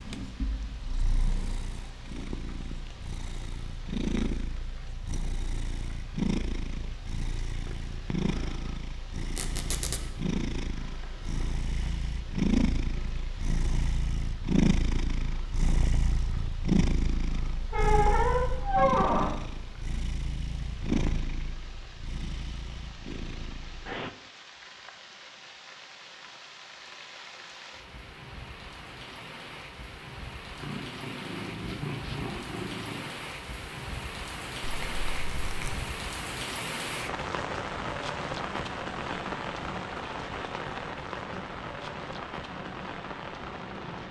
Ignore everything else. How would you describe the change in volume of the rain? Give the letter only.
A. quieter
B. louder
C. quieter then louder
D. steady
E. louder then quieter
B.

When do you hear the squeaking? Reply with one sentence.
The squeaking can be heard from 9.3 to 10.0 s, from 17.7 to 19.4 s and from 34.6 to 35.8 s.